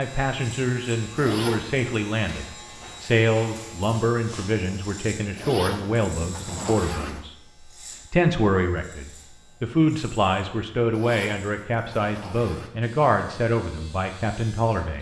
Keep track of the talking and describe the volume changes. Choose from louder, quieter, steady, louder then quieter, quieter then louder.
steady.